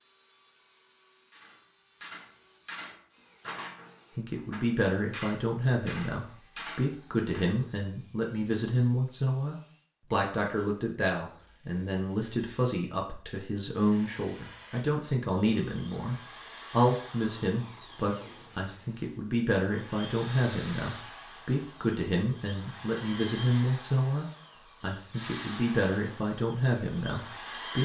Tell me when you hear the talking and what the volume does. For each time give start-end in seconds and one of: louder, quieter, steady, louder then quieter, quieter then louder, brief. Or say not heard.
4.2-27.8 steady.